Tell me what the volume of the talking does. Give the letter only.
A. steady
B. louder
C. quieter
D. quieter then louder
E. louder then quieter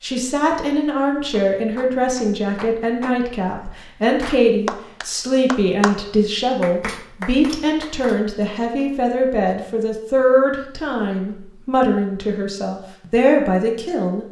A.